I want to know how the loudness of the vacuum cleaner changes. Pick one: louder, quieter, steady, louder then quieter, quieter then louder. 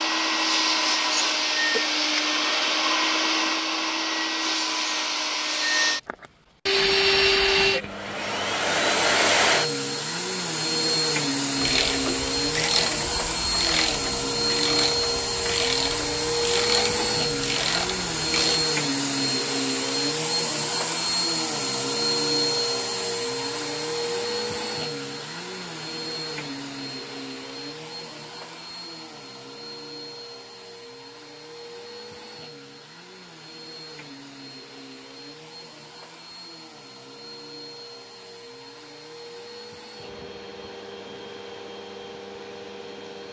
quieter.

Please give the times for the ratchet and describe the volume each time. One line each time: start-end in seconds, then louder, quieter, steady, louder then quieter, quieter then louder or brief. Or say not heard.
11.6-18.6 steady.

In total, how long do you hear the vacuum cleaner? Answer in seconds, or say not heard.
43 s.